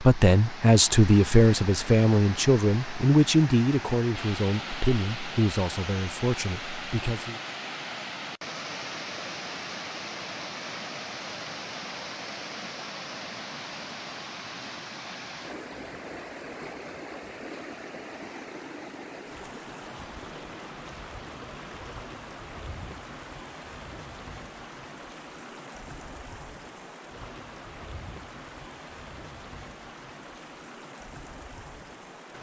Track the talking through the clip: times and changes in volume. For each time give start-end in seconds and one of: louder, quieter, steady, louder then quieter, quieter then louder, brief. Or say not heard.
0.0-7.3 quieter.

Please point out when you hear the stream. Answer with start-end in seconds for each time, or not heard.
0.0-32.3.